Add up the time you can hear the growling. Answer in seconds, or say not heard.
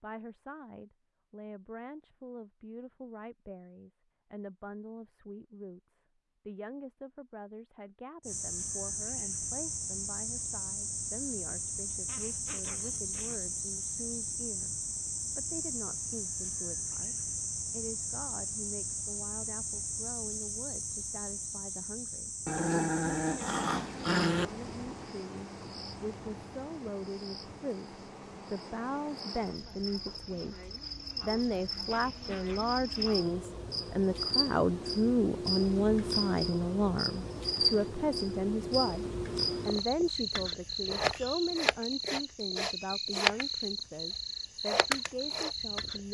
5 s.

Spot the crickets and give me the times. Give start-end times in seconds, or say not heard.
8.2-46.0.